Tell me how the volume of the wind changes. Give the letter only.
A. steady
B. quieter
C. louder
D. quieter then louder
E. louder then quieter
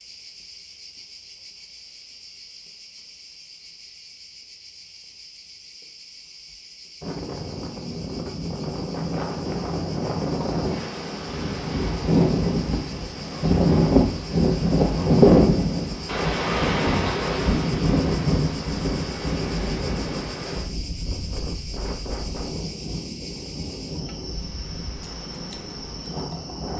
E.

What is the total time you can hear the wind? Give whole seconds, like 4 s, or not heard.
20 s.